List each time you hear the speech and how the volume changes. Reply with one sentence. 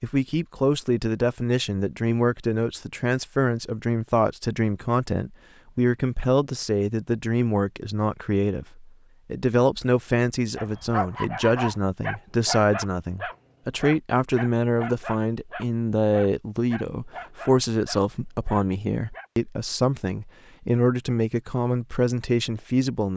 You can hear the speech from 0.0 to 23.1 s, at a steady volume.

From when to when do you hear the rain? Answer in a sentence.
The rain can't be heard in this clip.